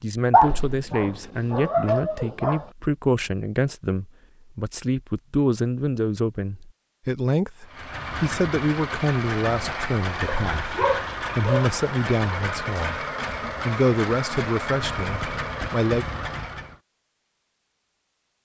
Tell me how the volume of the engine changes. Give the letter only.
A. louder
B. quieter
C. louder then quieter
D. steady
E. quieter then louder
D.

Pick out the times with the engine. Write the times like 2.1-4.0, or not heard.
7.7-16.8.